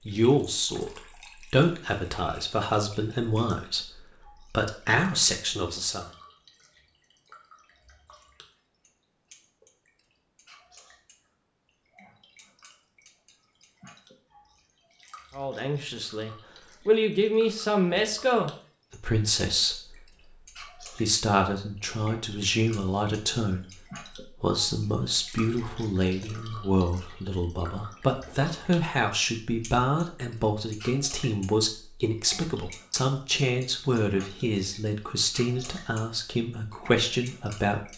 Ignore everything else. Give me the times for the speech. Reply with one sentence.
The speech can be heard from 0.1 to 6.0 s, from 15.3 to 20.1 s and from 20.8 to 37.9 s.